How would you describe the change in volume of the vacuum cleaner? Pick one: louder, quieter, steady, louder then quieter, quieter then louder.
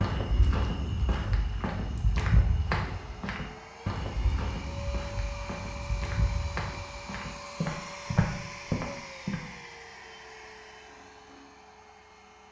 louder then quieter.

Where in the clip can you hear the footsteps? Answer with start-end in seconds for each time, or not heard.
0.0-9.4.